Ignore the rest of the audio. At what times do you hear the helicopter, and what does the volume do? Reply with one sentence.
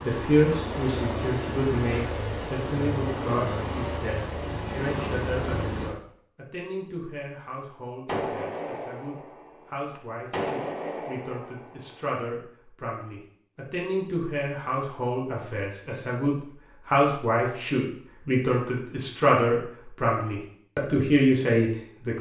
The helicopter can be heard from 0.0 to 6.0 s, at a steady volume.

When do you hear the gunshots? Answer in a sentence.
You can hear the gunshots from 8.1 to 12.1 s.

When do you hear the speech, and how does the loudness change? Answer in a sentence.
The speech can be heard from 0.0 to 22.1 s, getting quieter then louder.